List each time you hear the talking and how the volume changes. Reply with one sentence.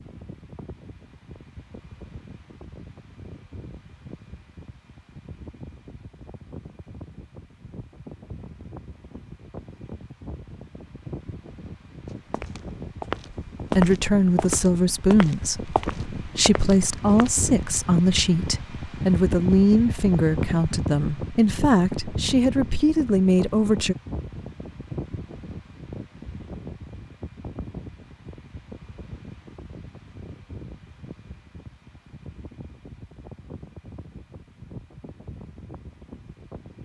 The talking can be heard from 13.8 to 23.9 s, at a steady volume.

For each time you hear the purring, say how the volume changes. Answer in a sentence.
You can't hear the purring here.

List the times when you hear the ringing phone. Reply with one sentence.
You can't hear the ringing phone here.